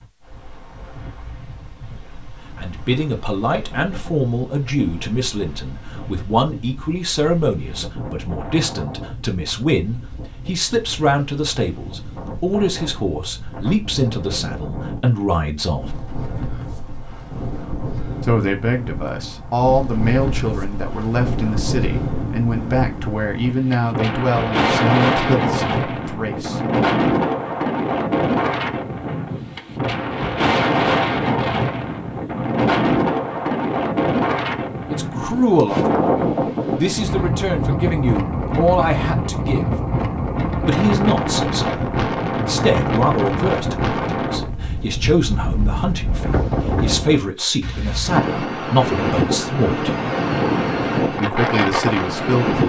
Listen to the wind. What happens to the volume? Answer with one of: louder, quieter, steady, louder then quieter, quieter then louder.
louder.